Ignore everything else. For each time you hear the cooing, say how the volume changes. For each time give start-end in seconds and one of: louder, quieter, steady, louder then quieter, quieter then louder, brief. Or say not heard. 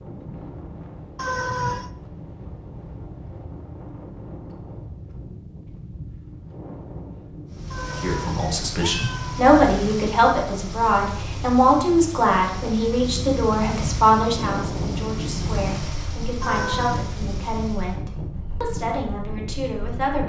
not heard.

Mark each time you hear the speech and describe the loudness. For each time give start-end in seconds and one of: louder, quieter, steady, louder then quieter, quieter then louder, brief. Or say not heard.
8.0-20.2 quieter.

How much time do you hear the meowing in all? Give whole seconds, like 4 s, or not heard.
3 s.